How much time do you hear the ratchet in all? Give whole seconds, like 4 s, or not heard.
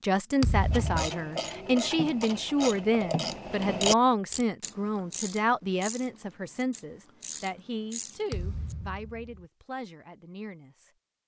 8 s.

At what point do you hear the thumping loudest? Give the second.
1 s.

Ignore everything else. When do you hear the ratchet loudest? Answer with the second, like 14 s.
4 s.